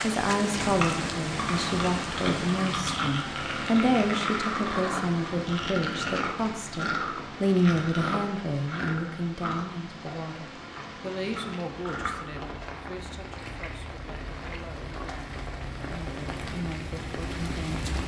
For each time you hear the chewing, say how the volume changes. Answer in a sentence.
The chewing can be heard from 0.6 to 12.3 s, getting quieter.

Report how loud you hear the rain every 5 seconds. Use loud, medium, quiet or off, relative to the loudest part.
loud, medium, medium, loud.